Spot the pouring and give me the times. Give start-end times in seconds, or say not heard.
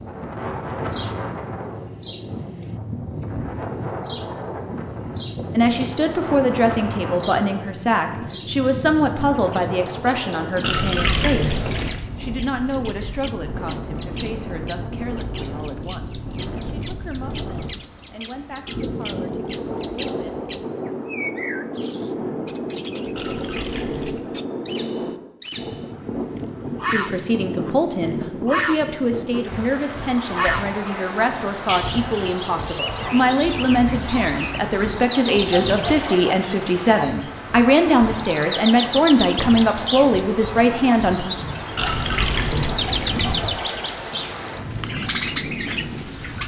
10.6-12.0, 23.1-24.2, 41.8-43.5.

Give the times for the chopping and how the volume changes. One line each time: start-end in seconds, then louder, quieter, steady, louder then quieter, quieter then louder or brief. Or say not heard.
not heard.